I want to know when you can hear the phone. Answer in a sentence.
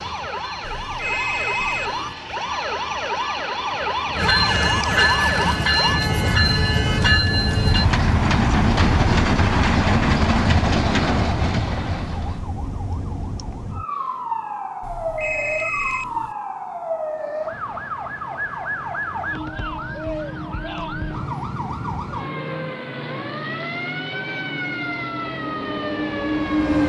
You can hear the phone from 0.6 to 2.1 s and from 14.8 to 16.4 s.